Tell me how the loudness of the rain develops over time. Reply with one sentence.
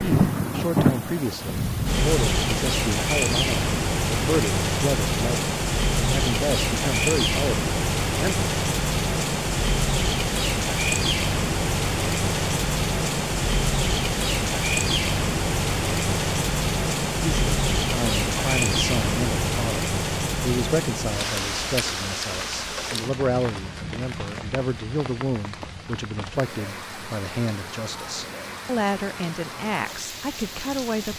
The volume of the rain goes down.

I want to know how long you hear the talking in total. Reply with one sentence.
The talking can be heard for 22 seconds in total.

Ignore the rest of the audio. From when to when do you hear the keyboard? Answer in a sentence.
You can't hear the keyboard here.